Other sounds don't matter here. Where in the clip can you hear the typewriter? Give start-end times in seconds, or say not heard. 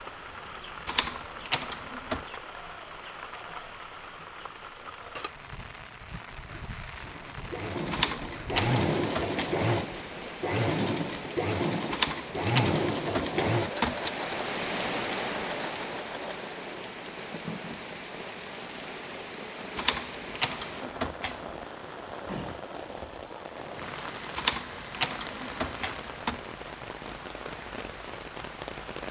0.8-2.4, 7.9-9.6, 11.9-14.1, 19.8-21.4, 24.4-26.4.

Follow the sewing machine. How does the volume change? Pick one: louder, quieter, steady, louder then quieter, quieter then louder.
quieter.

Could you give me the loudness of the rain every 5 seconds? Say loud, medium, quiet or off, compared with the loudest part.
medium, medium, loud, loud, loud, loud.